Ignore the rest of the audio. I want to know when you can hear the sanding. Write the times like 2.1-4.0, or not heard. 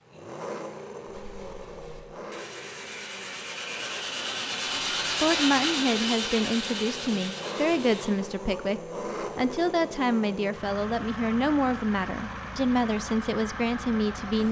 1.1-8.3.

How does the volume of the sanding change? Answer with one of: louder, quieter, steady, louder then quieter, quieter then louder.
louder then quieter.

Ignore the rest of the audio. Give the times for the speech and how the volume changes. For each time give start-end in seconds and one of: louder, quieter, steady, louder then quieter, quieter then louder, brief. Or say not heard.
5.2-14.4 steady.